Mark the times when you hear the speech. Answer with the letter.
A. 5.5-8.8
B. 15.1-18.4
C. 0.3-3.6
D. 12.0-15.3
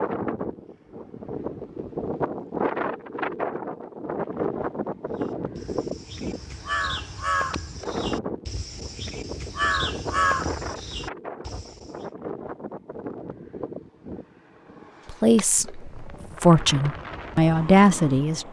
B.